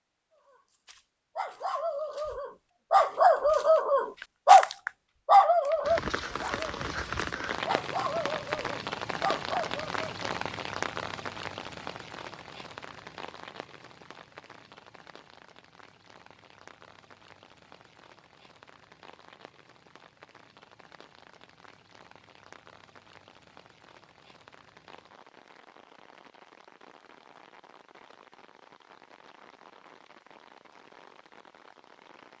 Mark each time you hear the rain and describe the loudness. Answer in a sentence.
You can hear the rain from 5.8 to 32.3 s, getting quieter.